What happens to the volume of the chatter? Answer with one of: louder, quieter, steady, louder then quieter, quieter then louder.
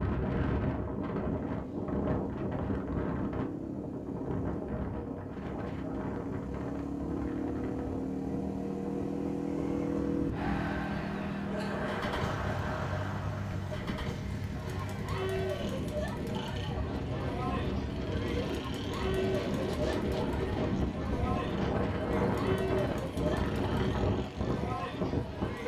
steady.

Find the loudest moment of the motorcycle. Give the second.
10 s.